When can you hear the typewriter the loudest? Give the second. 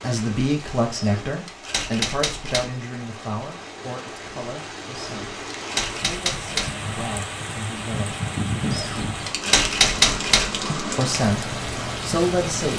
10 s.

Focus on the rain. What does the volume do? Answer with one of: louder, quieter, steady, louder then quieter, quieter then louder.
louder.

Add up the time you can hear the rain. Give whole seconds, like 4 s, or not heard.
13 s.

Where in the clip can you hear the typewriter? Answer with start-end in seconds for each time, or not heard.
1.0-2.7, 5.0-6.8, 8.7-10.7.